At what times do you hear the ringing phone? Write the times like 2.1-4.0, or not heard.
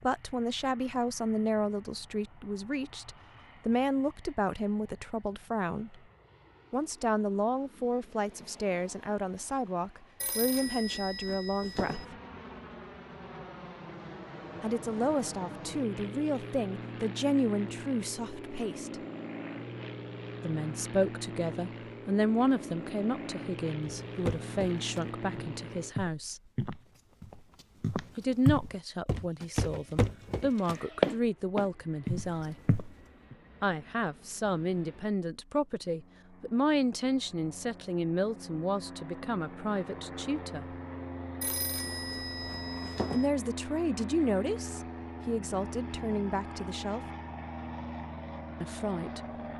10.2-12.1, 41.4-43.3.